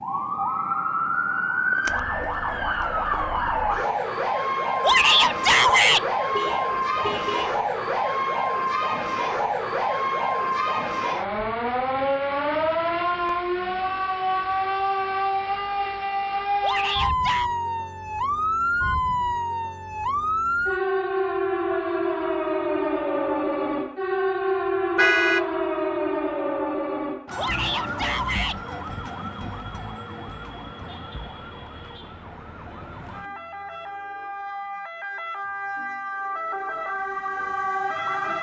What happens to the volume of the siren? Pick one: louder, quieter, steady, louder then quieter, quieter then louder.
quieter.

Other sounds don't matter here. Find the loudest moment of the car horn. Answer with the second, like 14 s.
25 s.